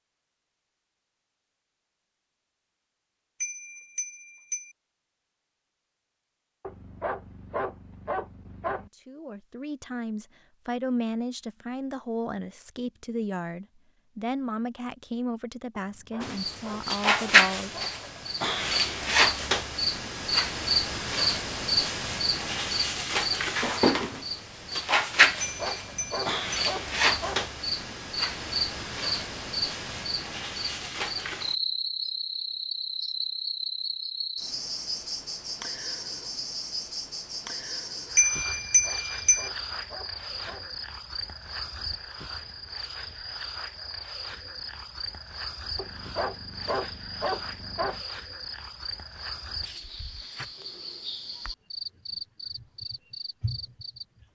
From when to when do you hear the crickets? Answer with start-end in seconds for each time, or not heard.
16.2-54.2.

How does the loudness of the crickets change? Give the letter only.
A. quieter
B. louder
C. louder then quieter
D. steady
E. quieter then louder
A.